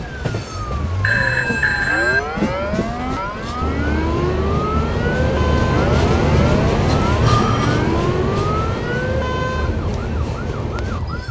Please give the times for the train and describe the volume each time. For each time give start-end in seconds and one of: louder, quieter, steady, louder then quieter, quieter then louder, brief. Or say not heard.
0.0-11.2 louder then quieter.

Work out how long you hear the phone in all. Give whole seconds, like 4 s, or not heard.
2 s.